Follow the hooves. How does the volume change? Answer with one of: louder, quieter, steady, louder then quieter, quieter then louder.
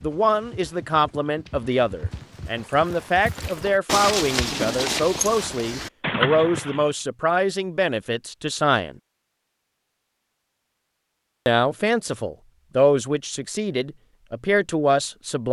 louder.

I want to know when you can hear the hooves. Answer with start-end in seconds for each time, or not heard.
0.0-7.0.